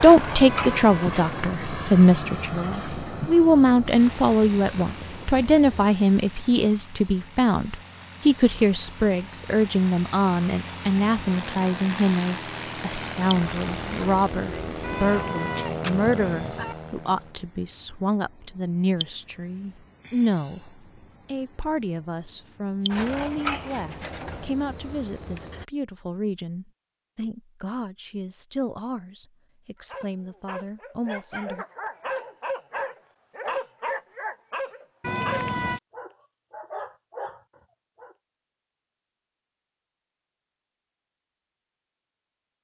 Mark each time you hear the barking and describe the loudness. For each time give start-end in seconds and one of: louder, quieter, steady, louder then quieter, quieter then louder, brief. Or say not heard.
29.8-38.1 louder then quieter.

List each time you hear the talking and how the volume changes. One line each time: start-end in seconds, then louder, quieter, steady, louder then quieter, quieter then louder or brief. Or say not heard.
0.0-31.6 quieter.